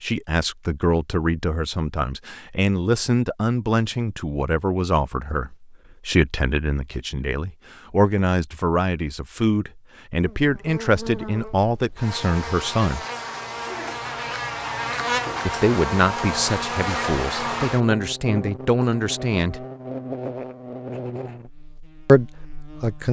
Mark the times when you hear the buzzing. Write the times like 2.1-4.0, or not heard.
10.2-23.0.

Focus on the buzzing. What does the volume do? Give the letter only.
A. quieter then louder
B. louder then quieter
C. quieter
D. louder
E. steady
B.